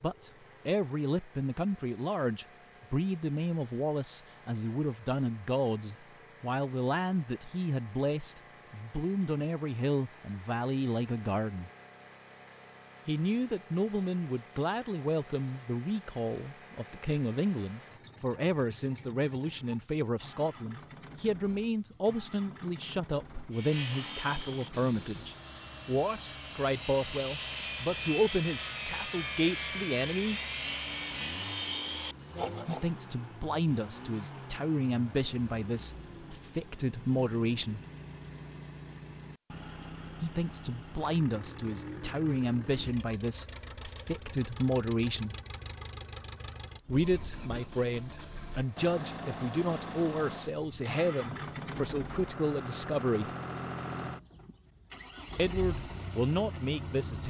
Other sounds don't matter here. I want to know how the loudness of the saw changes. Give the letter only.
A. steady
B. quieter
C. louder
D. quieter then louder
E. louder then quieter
C.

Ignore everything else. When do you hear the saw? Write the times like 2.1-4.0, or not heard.
23.5-32.9.